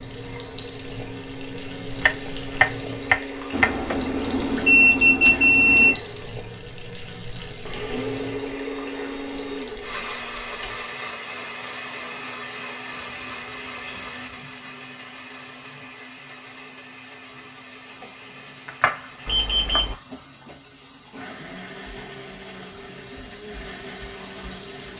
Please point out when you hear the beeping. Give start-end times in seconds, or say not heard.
3.5-6.0, 12.9-14.3, 19.2-19.9.